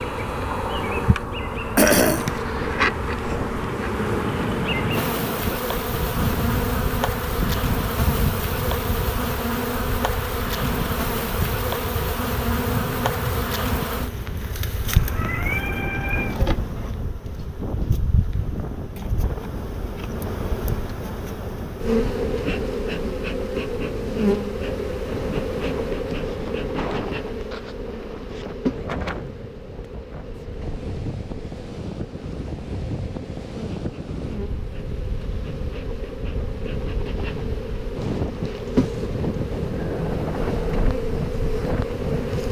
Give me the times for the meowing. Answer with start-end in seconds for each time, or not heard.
14.8-16.4.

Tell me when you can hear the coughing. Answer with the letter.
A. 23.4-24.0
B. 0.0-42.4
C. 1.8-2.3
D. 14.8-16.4
C.